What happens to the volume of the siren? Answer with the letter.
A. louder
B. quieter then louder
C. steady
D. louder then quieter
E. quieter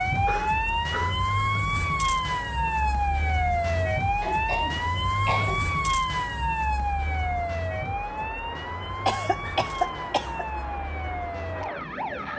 E.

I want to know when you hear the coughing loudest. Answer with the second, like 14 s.
10 s.